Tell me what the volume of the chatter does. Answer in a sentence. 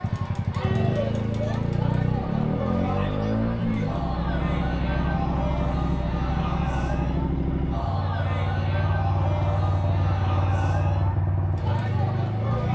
The loudness of the chatter stays about the same.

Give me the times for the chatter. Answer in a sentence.
You can hear the chatter from 0.0 to 12.6 s.